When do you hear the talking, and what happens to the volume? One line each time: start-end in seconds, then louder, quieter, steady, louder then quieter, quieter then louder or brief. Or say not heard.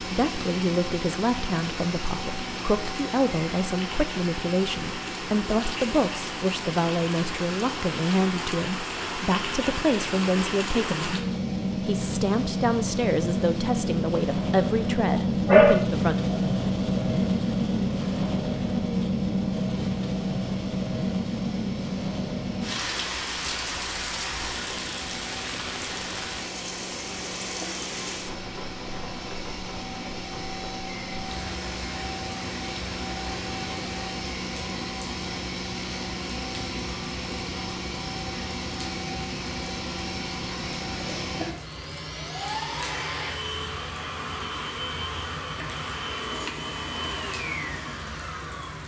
0.0-16.1 steady.